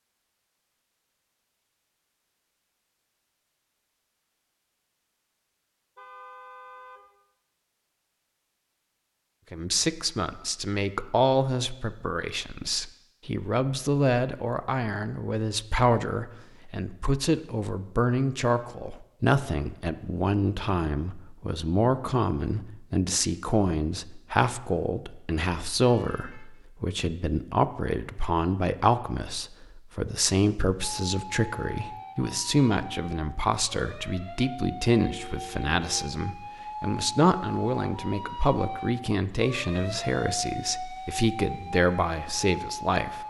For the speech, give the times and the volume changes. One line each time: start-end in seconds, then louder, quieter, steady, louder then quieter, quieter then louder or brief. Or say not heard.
9.5-43.2 steady.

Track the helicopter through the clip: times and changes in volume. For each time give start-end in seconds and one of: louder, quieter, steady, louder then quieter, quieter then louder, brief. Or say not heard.
not heard.